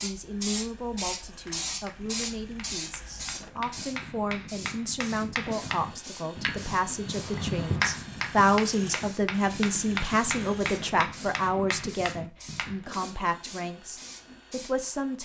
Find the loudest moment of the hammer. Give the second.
8 s.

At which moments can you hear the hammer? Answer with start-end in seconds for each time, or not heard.
1.4-13.0.